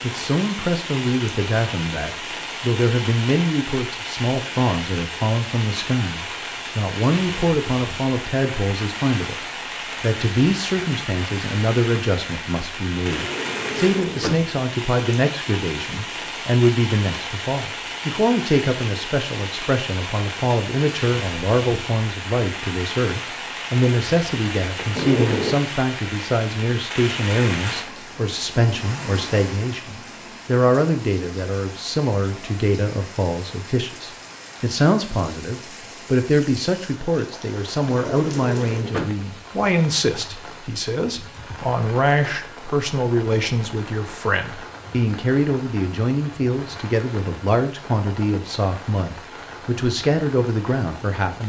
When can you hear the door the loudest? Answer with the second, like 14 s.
25 s.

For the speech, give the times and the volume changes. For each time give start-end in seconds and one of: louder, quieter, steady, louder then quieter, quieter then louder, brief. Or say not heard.
0.0-51.4 steady.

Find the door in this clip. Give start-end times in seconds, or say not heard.
13.1-14.5, 24.8-25.6, 37.9-39.1.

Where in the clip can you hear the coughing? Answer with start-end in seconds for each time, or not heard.
not heard.